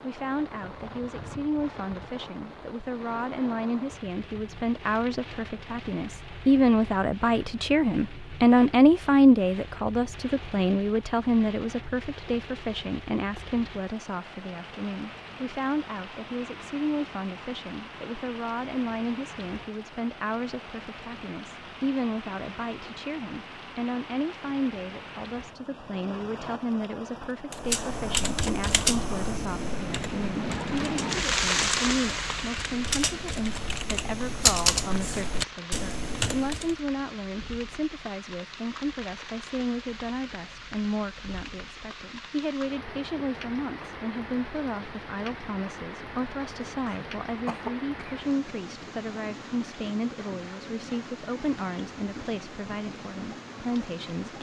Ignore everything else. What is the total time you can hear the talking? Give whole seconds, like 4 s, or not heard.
54 s.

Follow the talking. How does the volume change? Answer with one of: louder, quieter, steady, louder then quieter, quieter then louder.
quieter.